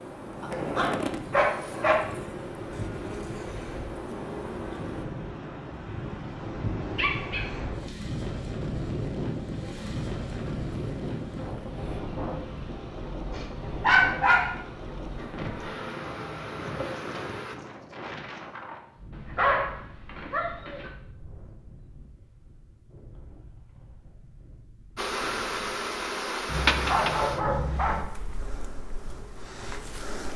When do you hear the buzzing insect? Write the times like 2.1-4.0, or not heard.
0.0-5.0, 9.5-17.6, 24.9-30.3.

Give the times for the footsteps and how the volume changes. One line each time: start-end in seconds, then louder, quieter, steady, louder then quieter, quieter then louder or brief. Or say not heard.
not heard.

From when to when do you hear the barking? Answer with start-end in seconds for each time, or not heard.
0.4-1.9, 7.0-7.9, 13.3-14.4, 19.1-20.9, 26.4-28.1.